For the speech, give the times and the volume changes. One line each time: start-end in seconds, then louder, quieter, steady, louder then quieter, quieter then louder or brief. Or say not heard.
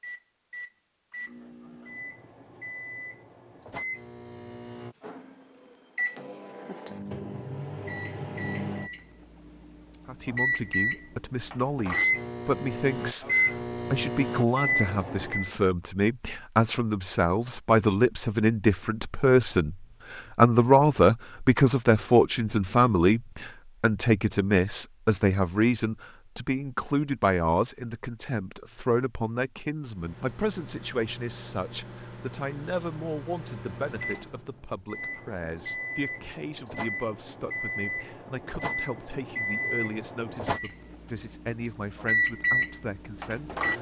10.1-43.7 louder then quieter.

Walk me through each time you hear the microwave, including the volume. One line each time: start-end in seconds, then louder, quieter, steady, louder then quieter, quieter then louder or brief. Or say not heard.
0.0-15.5 louder
29.9-43.7 louder.